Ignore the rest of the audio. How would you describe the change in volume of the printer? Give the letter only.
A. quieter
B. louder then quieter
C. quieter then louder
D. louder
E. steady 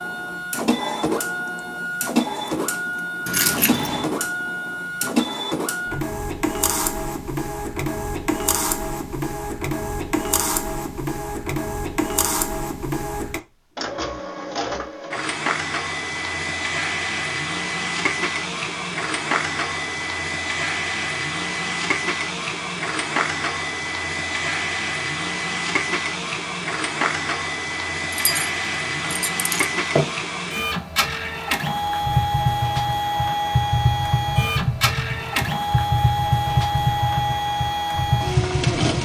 E.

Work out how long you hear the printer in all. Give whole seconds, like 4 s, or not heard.
39 s.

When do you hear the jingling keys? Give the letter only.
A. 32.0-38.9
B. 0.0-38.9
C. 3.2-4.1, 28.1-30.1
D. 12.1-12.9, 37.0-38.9
C.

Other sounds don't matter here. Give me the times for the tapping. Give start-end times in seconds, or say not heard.
32.0-38.9.